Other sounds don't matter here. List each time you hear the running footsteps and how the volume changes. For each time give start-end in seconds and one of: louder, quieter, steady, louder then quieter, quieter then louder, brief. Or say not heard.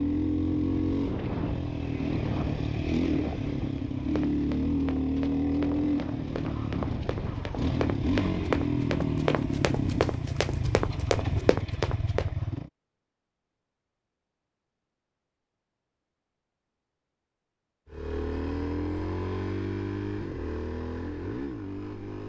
4.0-12.3 louder.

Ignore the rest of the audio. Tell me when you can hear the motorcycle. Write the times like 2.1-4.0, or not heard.
0.0-12.7, 17.9-22.2.